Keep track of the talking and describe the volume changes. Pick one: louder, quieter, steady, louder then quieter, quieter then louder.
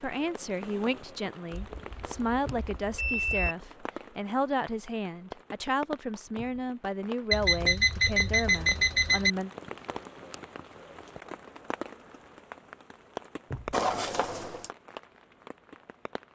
steady.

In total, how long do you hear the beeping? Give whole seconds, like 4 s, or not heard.
5 s.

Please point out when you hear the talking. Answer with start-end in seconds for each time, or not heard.
0.0-9.5.